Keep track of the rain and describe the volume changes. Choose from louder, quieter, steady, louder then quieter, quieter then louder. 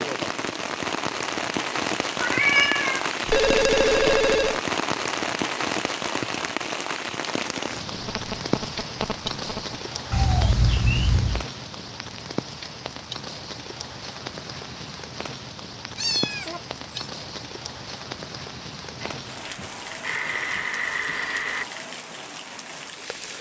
quieter.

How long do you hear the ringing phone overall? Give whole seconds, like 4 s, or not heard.
6 s.